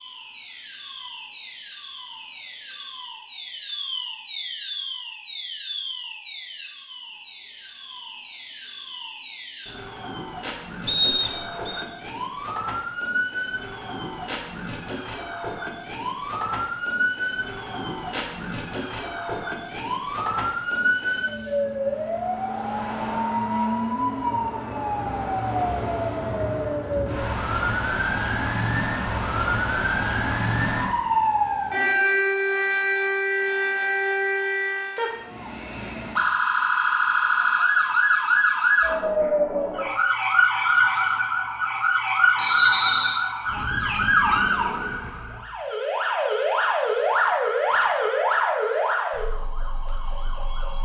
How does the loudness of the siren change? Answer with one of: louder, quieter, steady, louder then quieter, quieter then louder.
louder.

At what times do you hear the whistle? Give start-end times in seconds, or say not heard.
10.8-11.8, 42.4-43.2.